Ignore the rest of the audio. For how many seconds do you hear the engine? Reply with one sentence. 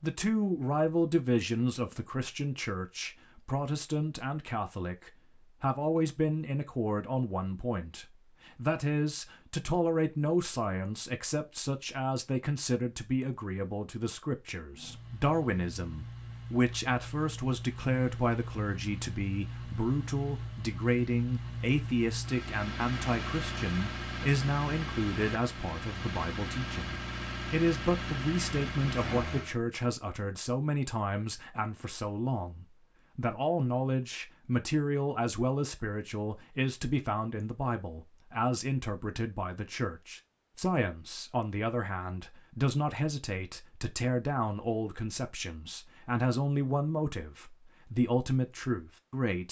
You can hear the engine for 15 seconds altogether.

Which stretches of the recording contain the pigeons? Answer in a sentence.
The pigeons can't be heard in this clip.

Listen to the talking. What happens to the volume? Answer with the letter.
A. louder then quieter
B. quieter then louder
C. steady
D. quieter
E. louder
C.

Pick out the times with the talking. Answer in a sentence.
The talking can be heard from 0.0 to 49.4 s.